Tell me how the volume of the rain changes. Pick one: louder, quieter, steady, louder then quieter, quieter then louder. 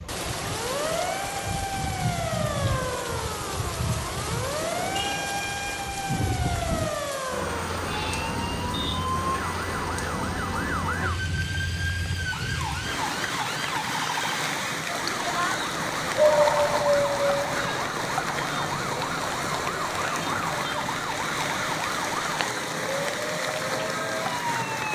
steady.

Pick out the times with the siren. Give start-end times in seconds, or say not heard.
0.0-24.8.